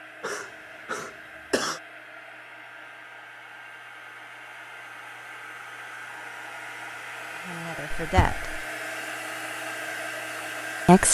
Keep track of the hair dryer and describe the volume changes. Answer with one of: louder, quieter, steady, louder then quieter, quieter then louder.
louder.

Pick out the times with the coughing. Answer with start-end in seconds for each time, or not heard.
0.2-1.8, 7.9-8.7.